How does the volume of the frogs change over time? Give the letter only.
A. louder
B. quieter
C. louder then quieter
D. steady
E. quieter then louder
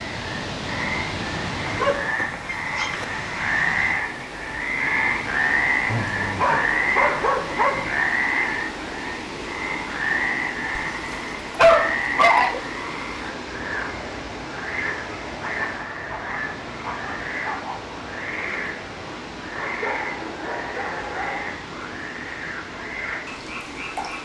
B.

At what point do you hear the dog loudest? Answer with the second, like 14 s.
12 s.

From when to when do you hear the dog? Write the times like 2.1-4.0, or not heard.
1.6-3.0, 5.8-8.0, 10.8-12.6, 15.1-17.8, 19.6-21.6.